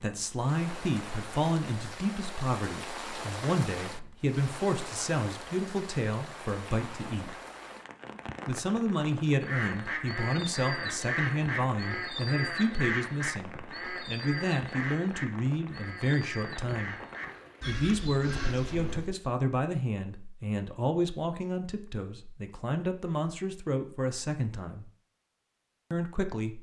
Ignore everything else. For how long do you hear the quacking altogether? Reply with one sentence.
The quacking can be heard for 10 seconds in total.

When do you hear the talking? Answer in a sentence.
You can hear the talking from 0.0 to 7.3 s, from 8.4 to 16.9 s, from 17.6 to 24.9 s and from 25.9 to 26.5 s.